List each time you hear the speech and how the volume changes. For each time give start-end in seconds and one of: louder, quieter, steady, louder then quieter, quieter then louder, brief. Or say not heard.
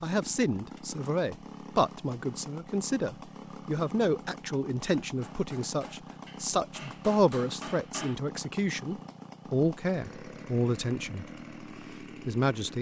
0.0-11.2 steady
12.2-12.7 brief.